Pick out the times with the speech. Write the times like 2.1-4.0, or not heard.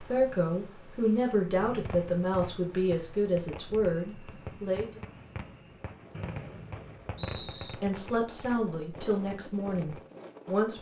0.0-5.0, 7.2-10.7.